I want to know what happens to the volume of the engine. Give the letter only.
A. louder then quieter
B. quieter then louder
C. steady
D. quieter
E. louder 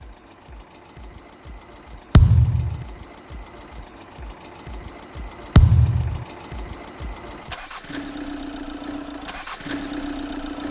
E.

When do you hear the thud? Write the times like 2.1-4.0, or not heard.
2.1-2.9, 5.5-6.2.